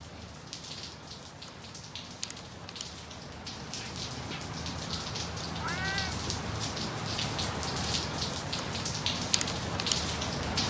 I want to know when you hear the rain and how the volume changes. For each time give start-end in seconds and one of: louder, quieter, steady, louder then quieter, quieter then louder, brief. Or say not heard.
0.0-10.6 louder.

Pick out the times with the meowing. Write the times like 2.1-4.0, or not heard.
5.5-6.2.